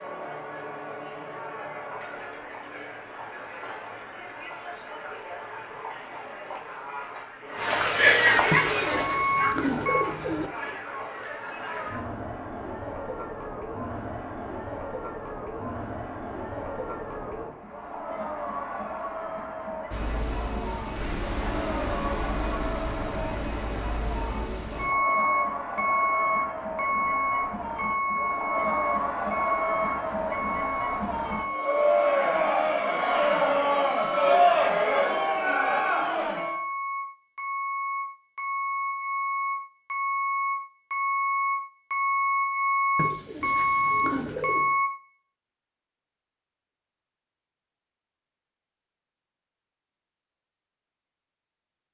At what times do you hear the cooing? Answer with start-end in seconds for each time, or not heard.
8.5-10.5, 43.0-44.8.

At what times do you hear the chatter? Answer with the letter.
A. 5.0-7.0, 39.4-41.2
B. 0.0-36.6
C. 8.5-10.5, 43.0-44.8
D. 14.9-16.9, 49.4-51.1
B.